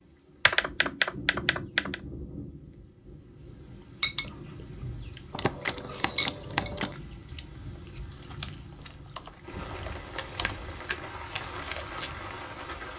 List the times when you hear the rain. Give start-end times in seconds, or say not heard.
0.0-12.9.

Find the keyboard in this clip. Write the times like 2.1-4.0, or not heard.
0.5-1.9, 5.3-7.0, 8.8-10.7.